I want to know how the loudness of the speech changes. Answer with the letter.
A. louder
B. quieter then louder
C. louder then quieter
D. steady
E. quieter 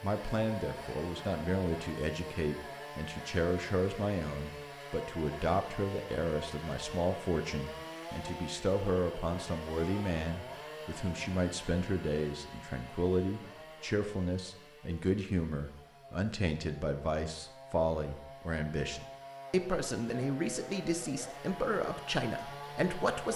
D.